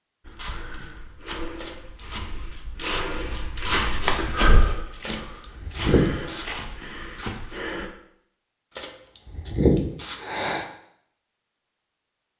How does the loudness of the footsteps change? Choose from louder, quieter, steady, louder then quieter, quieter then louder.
louder then quieter.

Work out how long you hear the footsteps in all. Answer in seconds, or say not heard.
8 s.